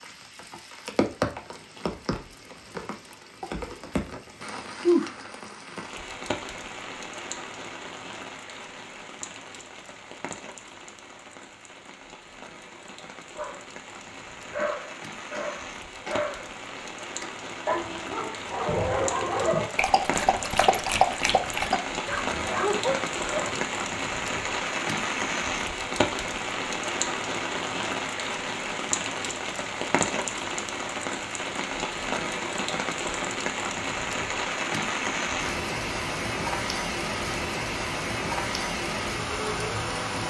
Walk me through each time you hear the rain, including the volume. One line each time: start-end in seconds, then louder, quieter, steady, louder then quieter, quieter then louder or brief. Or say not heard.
0.0-40.2 quieter then louder.